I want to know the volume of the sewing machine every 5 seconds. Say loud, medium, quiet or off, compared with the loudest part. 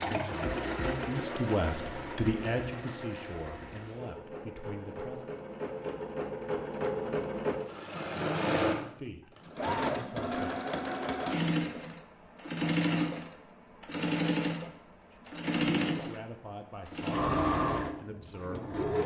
medium, loud, loud, loud.